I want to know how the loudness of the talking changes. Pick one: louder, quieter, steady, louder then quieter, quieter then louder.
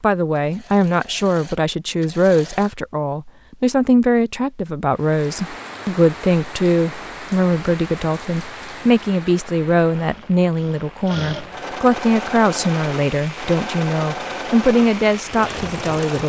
steady.